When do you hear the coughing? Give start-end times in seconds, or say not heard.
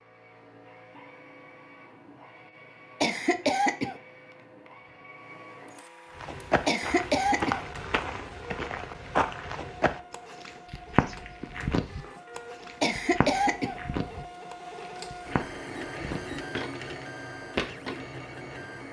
3.0-4.0, 6.7-7.7, 12.8-13.8.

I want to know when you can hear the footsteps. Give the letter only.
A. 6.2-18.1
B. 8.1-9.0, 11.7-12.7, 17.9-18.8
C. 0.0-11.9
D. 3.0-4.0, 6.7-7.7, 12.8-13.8
A.